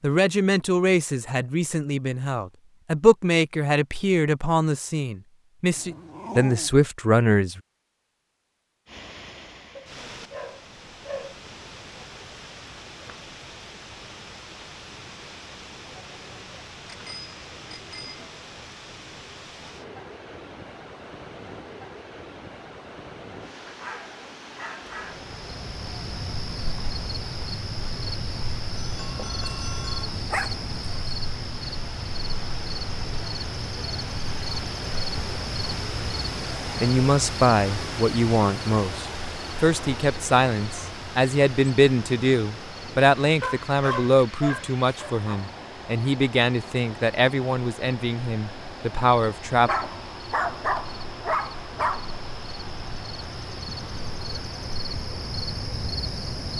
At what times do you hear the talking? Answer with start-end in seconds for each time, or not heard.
0.0-7.6, 36.8-49.7.